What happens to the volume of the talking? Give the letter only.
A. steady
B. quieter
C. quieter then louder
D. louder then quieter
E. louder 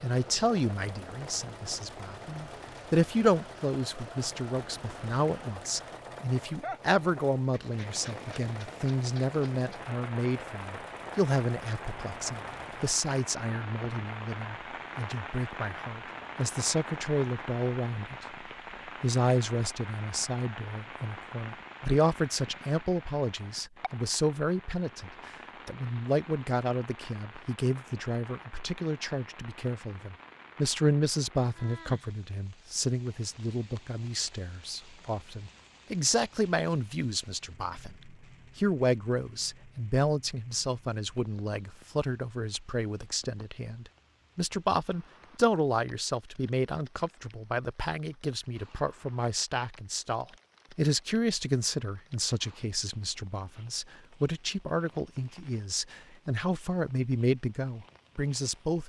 A.